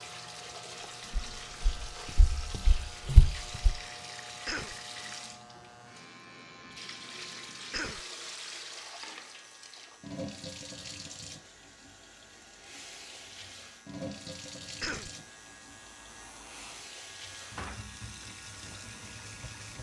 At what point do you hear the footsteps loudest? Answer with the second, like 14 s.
3 s.